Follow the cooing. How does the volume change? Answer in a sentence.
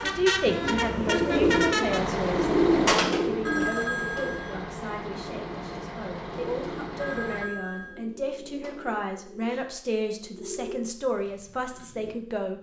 The volume of the cooing goes down.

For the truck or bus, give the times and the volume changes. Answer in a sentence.
The truck or bus can be heard from 0.0 to 7.5 s, getting quieter.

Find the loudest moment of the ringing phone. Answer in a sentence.
The volume of the ringing phone peaks at 4 seconds.